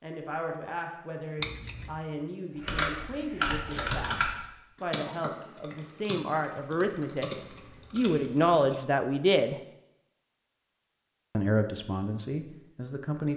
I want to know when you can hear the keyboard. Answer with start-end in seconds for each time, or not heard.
2.6-8.6.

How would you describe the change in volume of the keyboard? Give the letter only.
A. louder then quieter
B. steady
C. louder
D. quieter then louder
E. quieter
D.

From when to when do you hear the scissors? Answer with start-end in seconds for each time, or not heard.
1.4-1.9, 7.3-8.8.